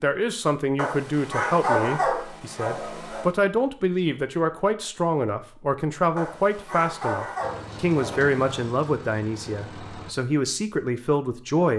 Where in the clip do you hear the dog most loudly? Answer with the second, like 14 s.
2 s.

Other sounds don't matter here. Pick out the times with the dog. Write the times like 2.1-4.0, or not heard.
0.8-3.3, 6.2-8.7.